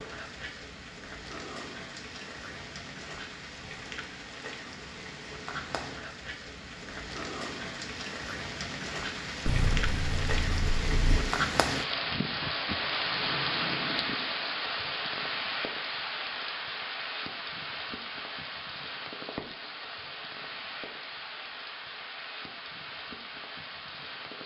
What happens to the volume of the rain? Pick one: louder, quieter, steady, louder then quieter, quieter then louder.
louder then quieter.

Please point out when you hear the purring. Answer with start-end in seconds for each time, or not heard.
9.4-11.2.